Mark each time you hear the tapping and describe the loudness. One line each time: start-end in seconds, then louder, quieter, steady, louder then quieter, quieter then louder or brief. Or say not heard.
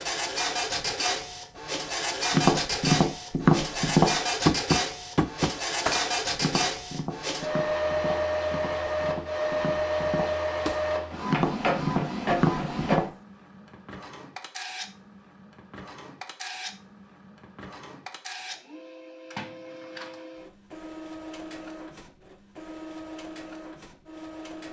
2.3-13.1 quieter then louder.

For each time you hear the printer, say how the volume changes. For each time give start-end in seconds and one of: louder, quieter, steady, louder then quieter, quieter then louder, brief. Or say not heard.
0.0-24.6 quieter.